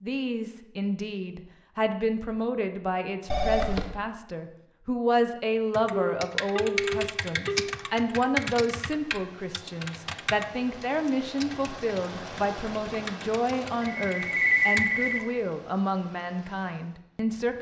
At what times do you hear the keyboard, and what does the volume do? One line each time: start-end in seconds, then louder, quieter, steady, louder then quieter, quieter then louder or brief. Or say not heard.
5.7-14.9 quieter.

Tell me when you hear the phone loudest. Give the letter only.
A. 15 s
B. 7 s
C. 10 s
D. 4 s
A.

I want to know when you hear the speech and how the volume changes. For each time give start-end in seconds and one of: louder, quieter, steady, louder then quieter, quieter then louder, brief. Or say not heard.
0.0-17.5 steady.